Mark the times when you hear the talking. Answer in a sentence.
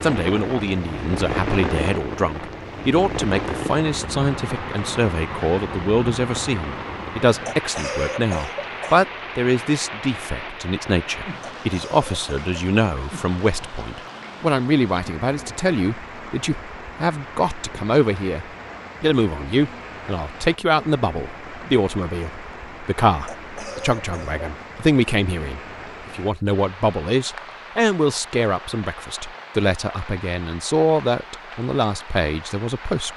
The talking can be heard from 0.0 to 33.1 s.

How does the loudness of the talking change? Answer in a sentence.
The volume of the talking stays about the same.